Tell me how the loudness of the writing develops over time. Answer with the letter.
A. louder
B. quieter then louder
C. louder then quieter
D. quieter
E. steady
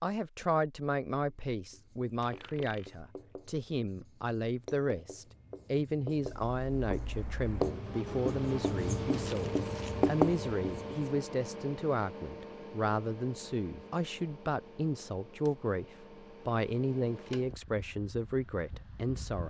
A.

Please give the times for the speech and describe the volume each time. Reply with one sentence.
You can hear the speech from 0.0 to 19.4 s, at a steady volume.